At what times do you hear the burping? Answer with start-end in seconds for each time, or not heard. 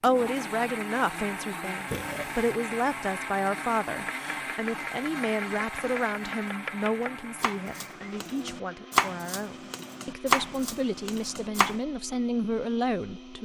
1.9-2.5.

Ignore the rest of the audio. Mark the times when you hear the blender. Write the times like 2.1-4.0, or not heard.
0.0-13.3.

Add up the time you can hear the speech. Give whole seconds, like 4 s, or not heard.
13 s.